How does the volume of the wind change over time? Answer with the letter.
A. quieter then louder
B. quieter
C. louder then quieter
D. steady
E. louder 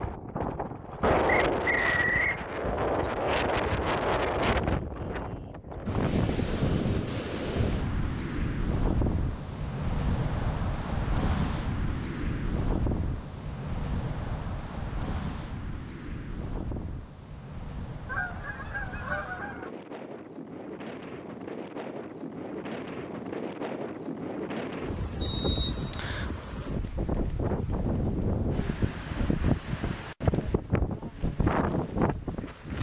A.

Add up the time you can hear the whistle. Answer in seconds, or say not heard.
2 s.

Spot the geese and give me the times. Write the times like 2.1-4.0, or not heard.
18.1-19.7.